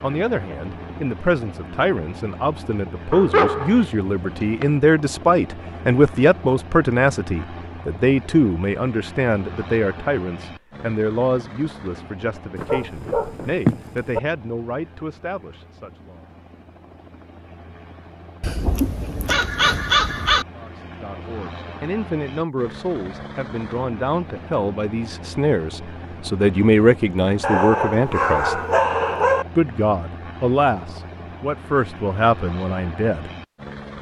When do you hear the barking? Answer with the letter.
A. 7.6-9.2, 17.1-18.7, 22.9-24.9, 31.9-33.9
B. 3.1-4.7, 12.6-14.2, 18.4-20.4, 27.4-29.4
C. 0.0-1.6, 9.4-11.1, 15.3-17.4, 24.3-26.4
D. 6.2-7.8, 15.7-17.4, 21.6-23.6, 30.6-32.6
B.